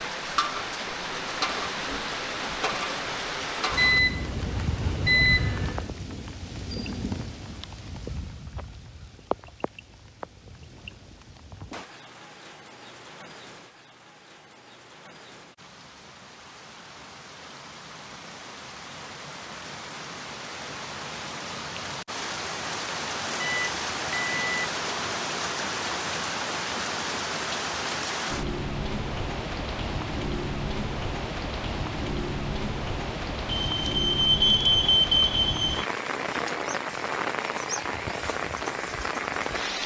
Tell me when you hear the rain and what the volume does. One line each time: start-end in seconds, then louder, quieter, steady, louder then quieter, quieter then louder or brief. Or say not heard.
0.0-39.8 quieter then louder.